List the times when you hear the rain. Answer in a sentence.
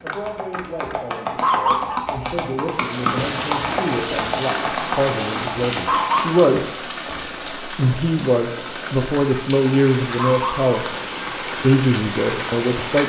You can hear the rain from 2.6 to 13.0 s.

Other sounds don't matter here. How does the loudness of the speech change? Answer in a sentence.
The loudness of the speech goes up.